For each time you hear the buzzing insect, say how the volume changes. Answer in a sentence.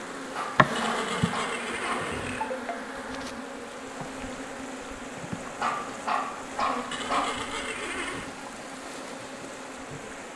You can hear the buzzing insect from 0.0 to 10.3 s, getting quieter.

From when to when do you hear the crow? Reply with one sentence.
The crow can't be heard in this clip.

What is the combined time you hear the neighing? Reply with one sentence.
You can hear the neighing for 3 seconds altogether.